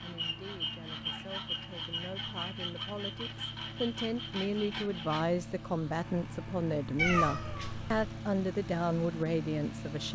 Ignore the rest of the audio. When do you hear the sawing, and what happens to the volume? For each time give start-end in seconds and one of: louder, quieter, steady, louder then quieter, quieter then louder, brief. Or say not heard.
0.0-5.3 steady.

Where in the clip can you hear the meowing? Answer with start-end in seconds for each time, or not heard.
7.0-8.1.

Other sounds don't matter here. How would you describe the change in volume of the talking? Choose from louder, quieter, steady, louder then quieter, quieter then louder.
louder.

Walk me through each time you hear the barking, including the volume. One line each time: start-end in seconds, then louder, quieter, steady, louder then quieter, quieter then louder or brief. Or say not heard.
not heard.